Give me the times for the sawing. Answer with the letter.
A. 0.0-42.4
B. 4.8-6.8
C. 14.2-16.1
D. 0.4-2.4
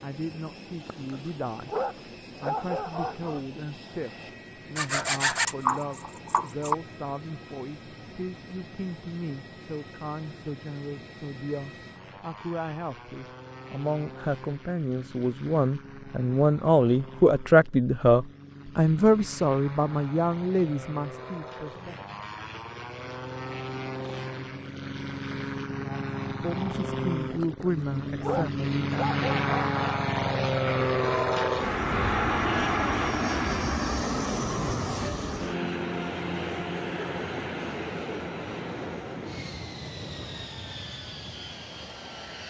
B.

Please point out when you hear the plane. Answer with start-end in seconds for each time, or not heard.
0.0-42.4.